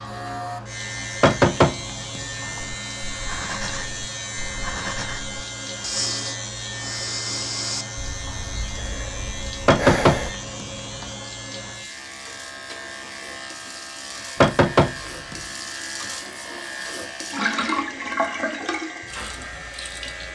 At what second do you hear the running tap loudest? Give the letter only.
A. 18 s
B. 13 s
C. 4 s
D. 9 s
A.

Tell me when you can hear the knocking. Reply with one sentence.
The knocking can be heard from 1.2 to 2.6 s, from 9.7 to 11.1 s and from 14.4 to 15.3 s.